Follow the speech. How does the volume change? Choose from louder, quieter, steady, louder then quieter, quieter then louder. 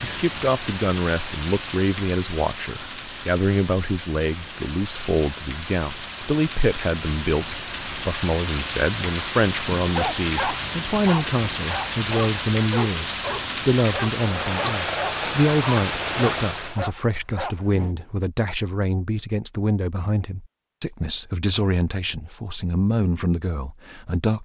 steady.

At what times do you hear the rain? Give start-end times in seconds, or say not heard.
0.0-16.9.